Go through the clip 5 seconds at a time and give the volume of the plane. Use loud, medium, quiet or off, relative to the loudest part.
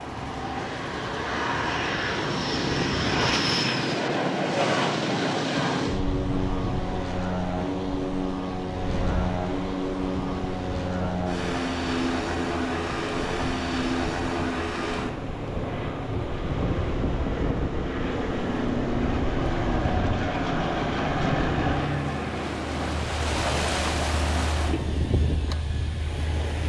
loud, loud, loud, loud, loud, medium.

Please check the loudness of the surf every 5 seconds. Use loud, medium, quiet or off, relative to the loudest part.
loud, loud, medium, loud, loud, loud.